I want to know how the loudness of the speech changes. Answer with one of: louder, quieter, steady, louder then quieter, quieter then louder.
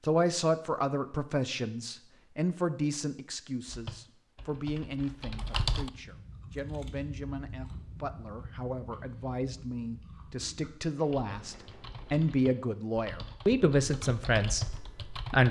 quieter then louder.